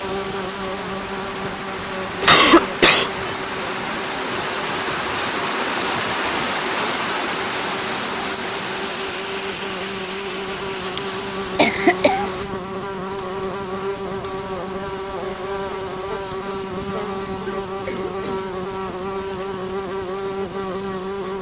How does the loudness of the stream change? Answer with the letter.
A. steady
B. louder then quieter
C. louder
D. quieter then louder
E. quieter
B.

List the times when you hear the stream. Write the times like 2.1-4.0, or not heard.
0.0-12.5.